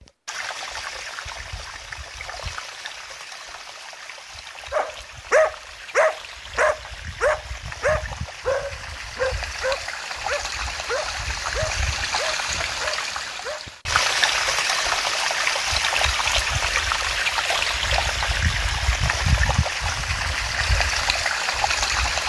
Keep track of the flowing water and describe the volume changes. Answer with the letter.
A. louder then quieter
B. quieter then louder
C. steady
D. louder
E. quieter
D.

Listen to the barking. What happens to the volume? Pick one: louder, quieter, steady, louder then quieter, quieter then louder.
quieter.